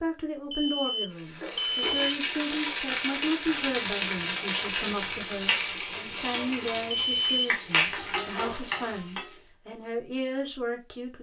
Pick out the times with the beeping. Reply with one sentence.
The beeping can be heard from 0.5 to 2.1 s and from 7.1 to 7.5 s.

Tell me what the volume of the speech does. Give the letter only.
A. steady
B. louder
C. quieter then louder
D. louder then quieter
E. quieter
A.